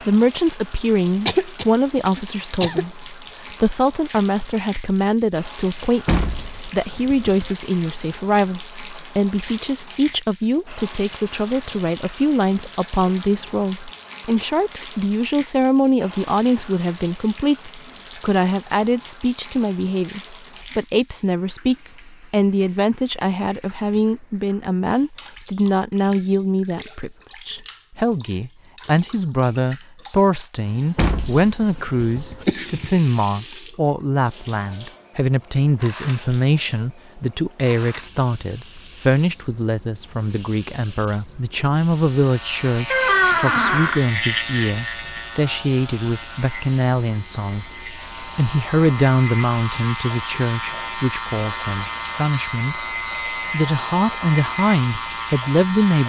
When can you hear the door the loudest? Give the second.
43 s.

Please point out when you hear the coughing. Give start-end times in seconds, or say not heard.
1.2-2.9, 32.5-32.9.